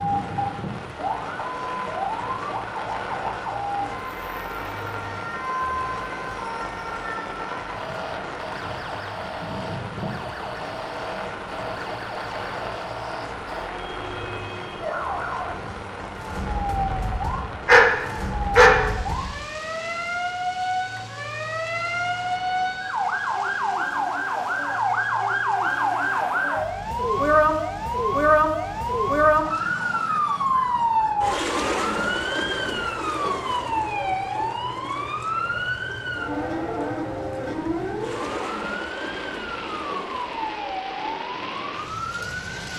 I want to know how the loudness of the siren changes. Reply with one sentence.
The loudness of the siren goes up, then down.